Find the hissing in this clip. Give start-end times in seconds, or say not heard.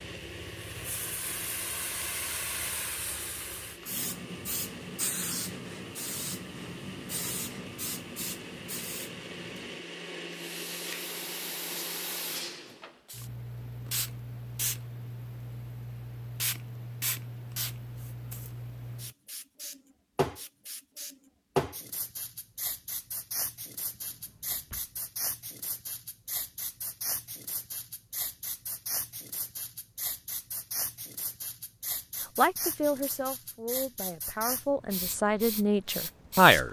0.0-36.6.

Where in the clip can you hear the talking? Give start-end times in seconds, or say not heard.
32.4-36.6.